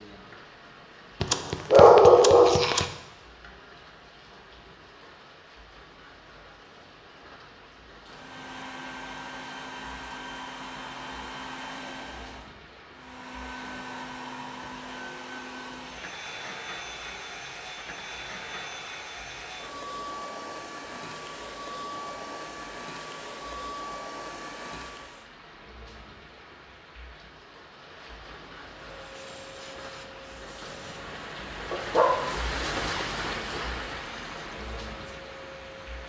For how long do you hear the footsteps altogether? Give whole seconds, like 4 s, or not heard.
not heard.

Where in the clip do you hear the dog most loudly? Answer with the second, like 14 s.
2 s.